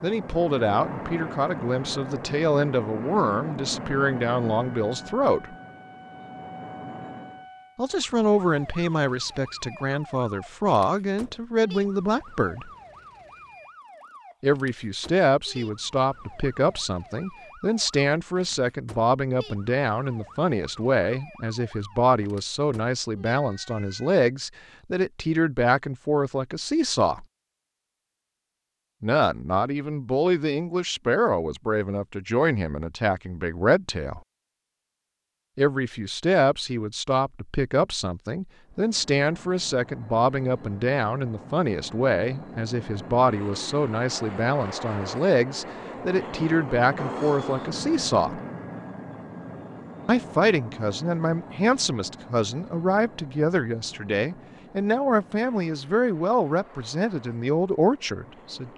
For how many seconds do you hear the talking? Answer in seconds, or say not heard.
50 s.